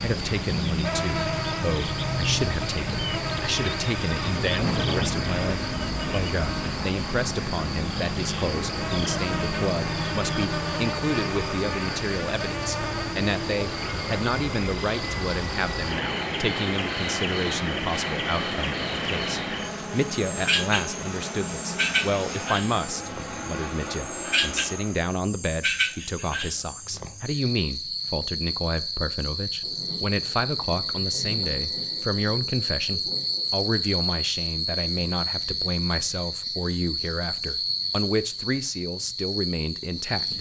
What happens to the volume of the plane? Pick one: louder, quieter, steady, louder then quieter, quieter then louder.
steady.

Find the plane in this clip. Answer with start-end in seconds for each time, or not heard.
0.0-25.0.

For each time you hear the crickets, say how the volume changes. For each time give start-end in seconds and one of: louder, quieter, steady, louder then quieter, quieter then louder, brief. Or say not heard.
0.0-40.3 steady.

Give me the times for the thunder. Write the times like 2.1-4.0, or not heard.
4.5-5.3, 29.6-33.5.